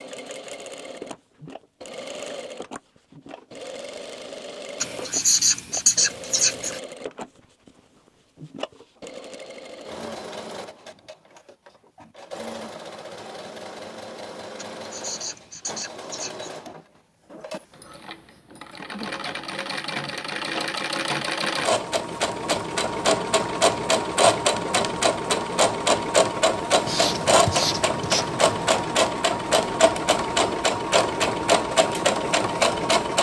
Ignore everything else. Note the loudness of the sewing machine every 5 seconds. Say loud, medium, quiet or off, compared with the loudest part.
quiet, quiet, quiet, quiet, loud, loud, loud.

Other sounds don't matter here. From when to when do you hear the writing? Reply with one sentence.
The writing can be heard from 4.8 to 6.8 s, from 14.6 to 16.6 s and from 26.9 to 28.6 s.